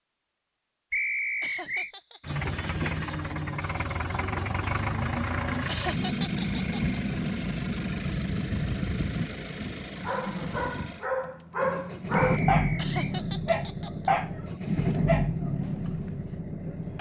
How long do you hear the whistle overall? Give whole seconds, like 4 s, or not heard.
2 s.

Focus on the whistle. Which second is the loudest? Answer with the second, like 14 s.
1 s.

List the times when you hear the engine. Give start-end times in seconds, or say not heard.
2.2-16.9.